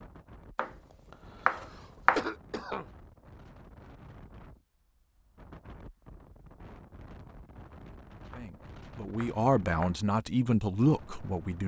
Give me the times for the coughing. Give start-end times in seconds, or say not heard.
1.6-2.9.